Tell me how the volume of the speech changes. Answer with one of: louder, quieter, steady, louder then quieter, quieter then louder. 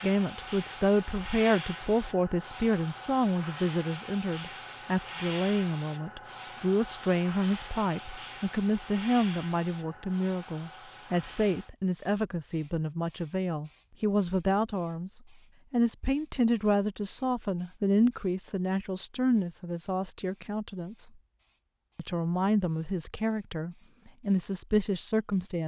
steady.